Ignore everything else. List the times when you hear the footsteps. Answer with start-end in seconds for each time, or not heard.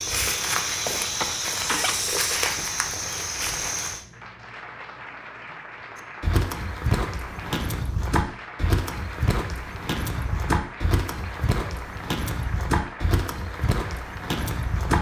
0.0-4.0, 6.2-14.9.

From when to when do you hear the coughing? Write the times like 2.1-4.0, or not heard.
1.2-2.0.